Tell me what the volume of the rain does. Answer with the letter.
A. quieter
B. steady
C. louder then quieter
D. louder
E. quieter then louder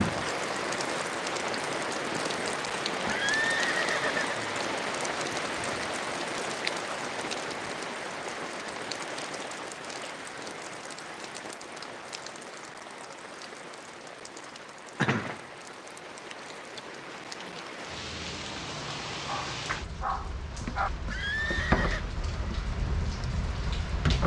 E.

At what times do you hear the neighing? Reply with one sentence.
You can hear the neighing from 3.0 to 4.3 s and from 21.1 to 22.1 s.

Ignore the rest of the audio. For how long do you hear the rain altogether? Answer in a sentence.
You can hear the rain for 24 seconds altogether.